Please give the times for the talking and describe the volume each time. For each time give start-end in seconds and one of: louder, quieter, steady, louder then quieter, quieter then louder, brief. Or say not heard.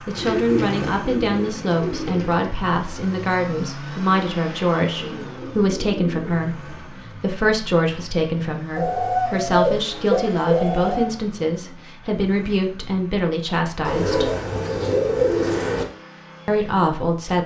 0.1-14.3 steady
16.4-17.4 brief.